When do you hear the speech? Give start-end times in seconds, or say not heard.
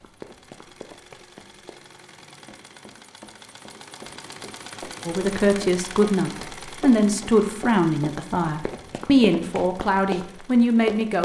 5.0-11.2.